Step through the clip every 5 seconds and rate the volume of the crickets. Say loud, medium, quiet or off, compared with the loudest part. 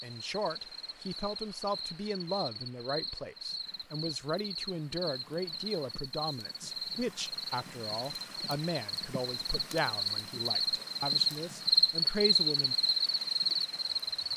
quiet, medium, loud.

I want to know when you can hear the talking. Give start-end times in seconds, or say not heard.
0.0-12.8.